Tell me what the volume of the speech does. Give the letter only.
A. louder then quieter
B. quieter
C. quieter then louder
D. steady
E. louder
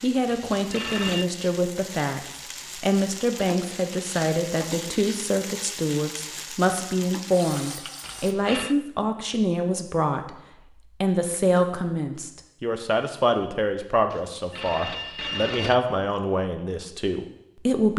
D.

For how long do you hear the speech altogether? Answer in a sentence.
You can hear the speech for 17 seconds altogether.